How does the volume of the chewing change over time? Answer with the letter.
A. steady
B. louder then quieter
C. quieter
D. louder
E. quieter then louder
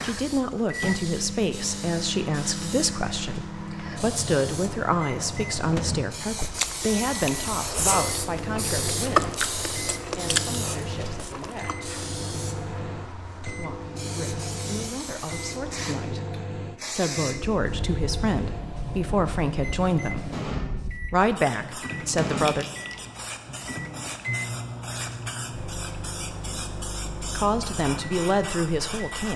B.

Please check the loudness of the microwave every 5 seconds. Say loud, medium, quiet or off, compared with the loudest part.
loud, loud, loud, loud, loud, medium.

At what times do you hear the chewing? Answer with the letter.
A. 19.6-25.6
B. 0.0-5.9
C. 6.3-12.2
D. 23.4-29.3
C.